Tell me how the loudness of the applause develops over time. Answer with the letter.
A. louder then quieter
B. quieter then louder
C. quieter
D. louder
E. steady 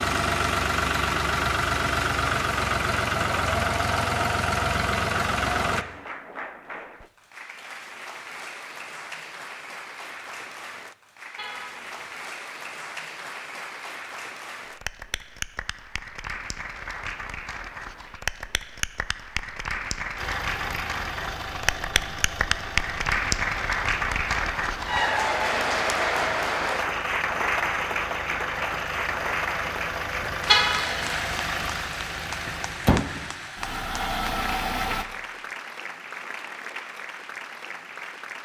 A.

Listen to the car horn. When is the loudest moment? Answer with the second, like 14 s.
31 s.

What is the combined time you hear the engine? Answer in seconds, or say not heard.
21 s.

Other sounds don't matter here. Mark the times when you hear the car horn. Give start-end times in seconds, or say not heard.
11.3-12.1, 30.4-31.1.